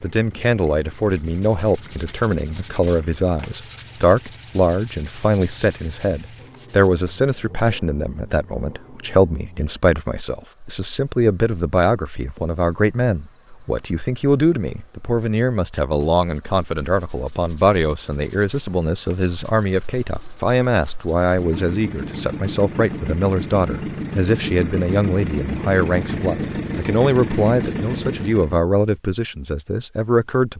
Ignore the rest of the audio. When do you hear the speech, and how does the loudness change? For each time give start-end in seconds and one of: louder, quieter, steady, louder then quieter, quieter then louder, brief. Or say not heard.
0.0-30.5 steady.